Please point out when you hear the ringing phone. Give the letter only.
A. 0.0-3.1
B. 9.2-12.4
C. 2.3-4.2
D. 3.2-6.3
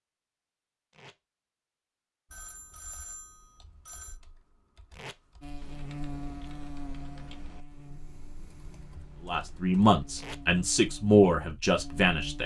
C.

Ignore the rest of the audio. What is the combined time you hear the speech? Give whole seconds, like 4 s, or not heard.
3 s.